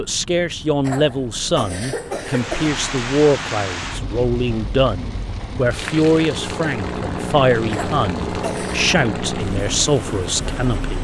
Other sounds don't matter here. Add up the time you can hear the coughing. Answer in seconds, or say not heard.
3 s.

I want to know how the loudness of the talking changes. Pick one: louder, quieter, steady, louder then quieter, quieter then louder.
steady.